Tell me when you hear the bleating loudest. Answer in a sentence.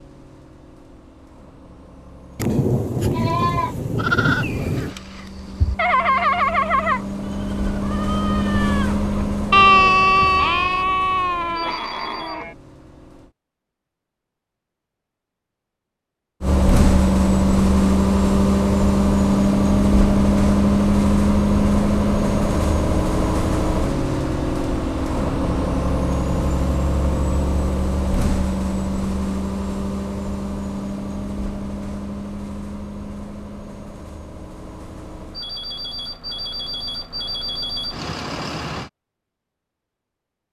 The loudest moment of the bleating is at 10 seconds.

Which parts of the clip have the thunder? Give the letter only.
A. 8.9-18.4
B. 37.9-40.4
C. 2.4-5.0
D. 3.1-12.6
C.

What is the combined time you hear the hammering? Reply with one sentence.
The hammering can't be heard in this clip.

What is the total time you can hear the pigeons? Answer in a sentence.
You can't hear the pigeons here.